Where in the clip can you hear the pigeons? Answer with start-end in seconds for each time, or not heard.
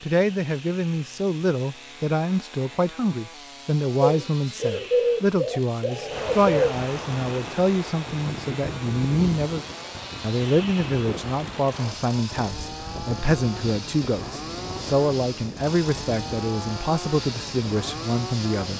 4.0-6.8.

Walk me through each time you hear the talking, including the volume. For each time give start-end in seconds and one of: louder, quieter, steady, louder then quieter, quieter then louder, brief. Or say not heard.
0.0-18.7 steady.